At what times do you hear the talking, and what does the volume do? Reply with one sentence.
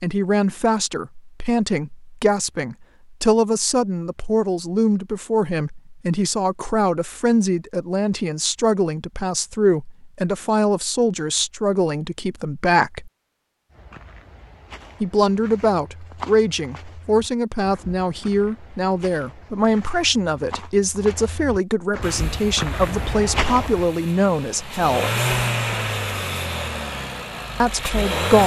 The talking can be heard from 0.0 to 13.1 s, at a steady volume; from 15.0 to 25.1 s, at a steady volume; and briefly from 27.6 to 28.4 s.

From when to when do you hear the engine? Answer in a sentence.
The engine can be heard from 22.0 to 28.4 s.